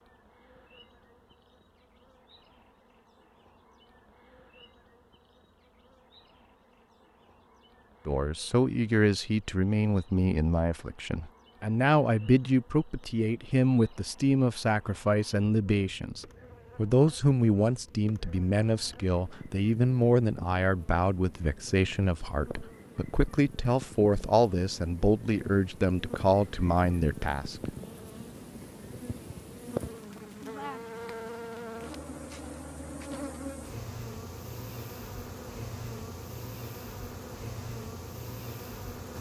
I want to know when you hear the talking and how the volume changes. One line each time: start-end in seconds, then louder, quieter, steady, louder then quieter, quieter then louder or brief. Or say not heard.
8.1-27.7 steady.